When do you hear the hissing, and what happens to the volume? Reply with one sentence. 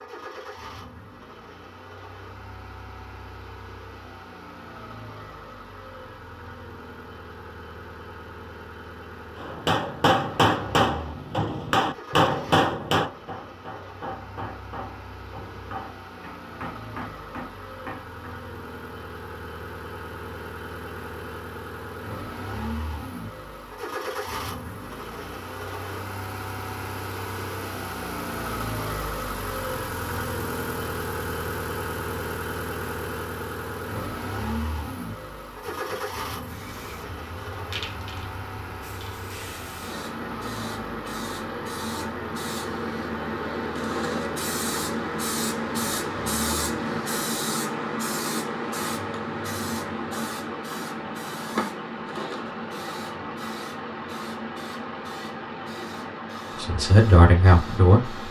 The hissing can be heard from 35.5 to 58.2 s, getting louder then quieter.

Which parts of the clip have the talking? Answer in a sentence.
You can hear the talking from 56.5 to 58.2 s.